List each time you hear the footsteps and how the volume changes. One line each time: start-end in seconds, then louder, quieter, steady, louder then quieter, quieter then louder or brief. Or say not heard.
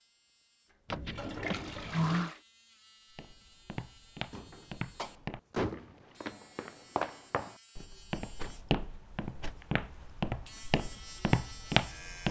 3.1-12.2 louder.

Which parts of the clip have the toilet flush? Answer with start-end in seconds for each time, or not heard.
0.9-2.4.